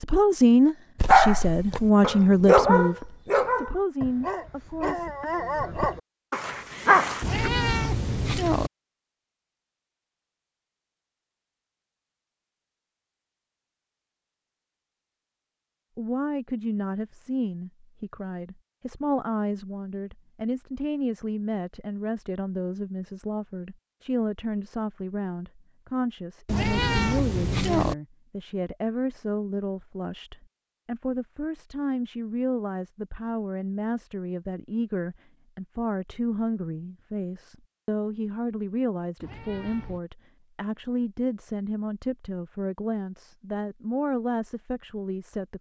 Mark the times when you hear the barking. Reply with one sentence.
You can hear the barking from 1.0 to 7.5 s.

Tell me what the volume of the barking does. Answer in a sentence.
The volume of the barking goes down, then up.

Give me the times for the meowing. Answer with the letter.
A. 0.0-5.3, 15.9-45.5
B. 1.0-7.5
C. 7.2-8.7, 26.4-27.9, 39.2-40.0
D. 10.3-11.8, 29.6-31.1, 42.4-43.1
C.